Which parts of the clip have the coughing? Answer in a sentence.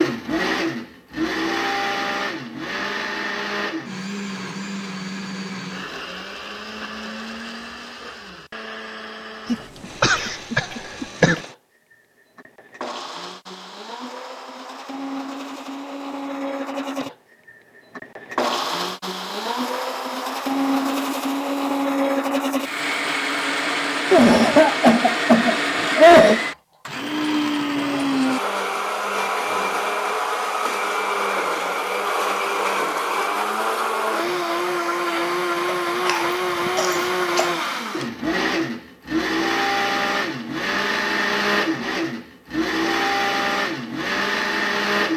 The coughing can be heard from 9.4 to 11.4 s, from 24.1 to 26.4 s and from 35.6 to 37.5 s.